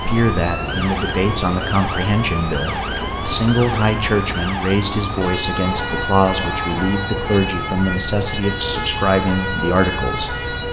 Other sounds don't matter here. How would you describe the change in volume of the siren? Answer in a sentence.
The volume of the siren stays about the same.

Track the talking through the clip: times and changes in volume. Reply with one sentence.
The talking can be heard from 0.0 to 10.4 s, at a steady volume.